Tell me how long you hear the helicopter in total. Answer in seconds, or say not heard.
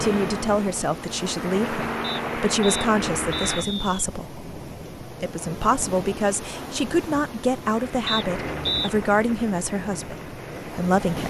7 s.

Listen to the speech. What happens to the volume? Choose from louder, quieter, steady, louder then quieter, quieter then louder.
steady.